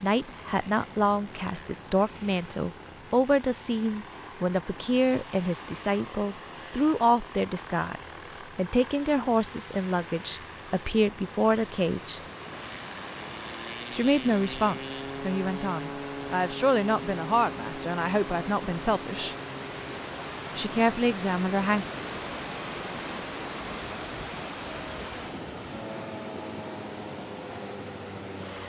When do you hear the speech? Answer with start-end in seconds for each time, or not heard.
0.0-12.2, 13.9-19.4, 20.6-21.9.